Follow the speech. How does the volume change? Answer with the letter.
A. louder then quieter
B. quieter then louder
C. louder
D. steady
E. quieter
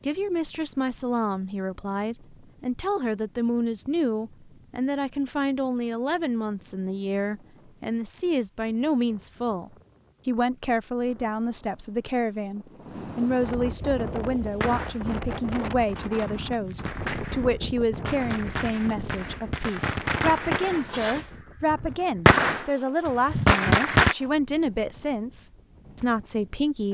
D.